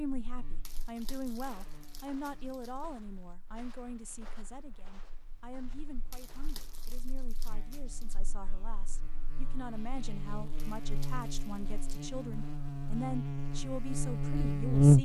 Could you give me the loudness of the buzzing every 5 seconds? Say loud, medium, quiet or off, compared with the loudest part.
quiet, quiet, loud.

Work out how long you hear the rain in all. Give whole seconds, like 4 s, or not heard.
not heard.